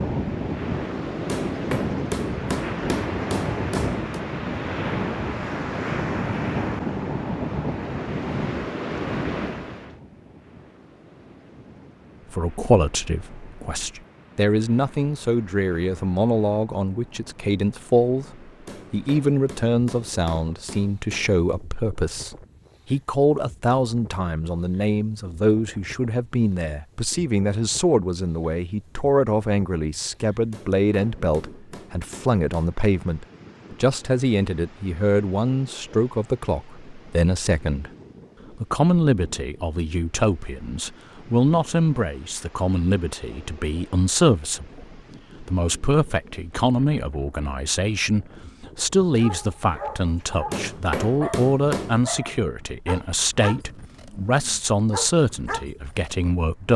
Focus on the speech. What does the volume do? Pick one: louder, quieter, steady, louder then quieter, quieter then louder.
steady.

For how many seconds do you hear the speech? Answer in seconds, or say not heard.
44 s.